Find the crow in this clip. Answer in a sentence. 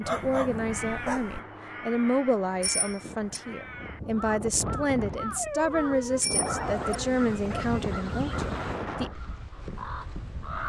The crow can be heard from 0.0 to 10.6 s.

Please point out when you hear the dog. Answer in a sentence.
The dog can be heard from 0.1 to 1.4 s and from 5.3 to 7.8 s.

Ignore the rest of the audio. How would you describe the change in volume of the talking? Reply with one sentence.
The loudness of the talking stays about the same.